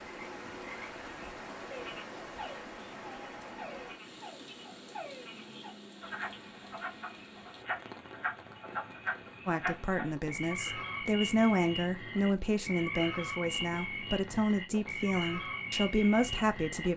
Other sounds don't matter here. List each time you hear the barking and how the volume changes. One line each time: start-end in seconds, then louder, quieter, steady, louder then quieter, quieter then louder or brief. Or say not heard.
not heard.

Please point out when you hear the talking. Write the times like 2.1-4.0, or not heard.
9.4-16.9.